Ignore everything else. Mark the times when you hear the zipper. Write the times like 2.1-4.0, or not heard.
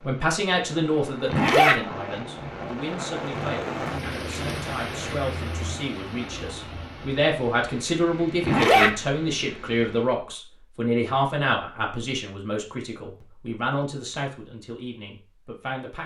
1.3-1.8, 8.4-8.9.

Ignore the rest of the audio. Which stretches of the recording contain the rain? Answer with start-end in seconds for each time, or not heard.
0.0-10.2.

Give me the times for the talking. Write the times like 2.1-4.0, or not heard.
0.1-16.0.